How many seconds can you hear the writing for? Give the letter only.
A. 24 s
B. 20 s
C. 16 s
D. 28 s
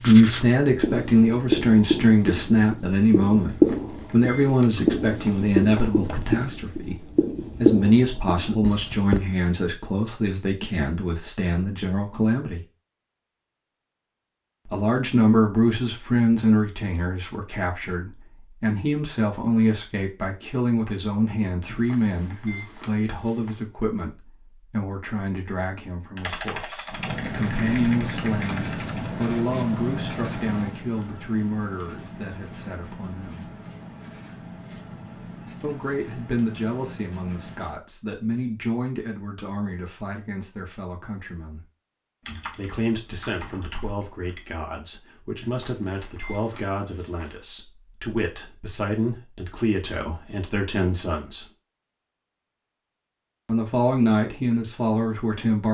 B.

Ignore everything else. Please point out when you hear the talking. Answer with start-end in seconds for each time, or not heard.
0.1-12.6, 14.7-33.5, 35.6-41.6, 42.5-51.5, 53.5-55.7.